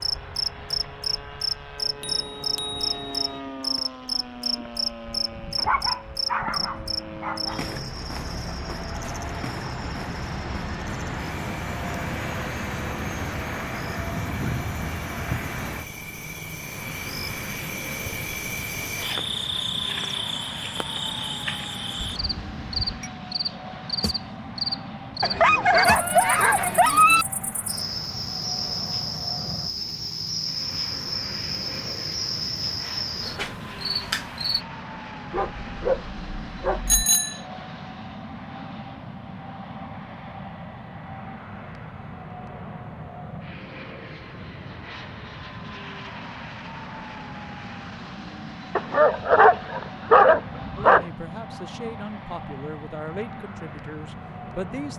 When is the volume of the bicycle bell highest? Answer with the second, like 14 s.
37 s.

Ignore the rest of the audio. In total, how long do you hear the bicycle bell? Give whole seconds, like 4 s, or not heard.
3 s.